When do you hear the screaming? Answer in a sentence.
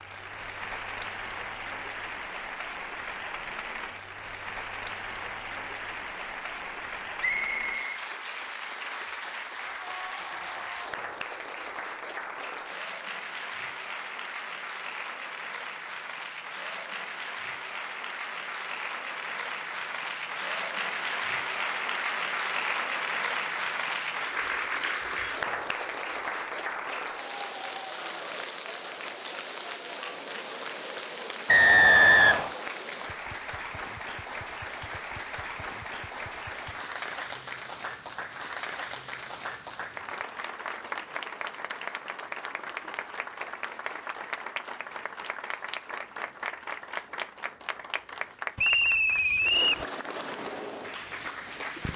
The screaming can be heard from 9.8 to 10.9 s.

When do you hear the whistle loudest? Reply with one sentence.
The volume of the whistle peaks at 32 seconds.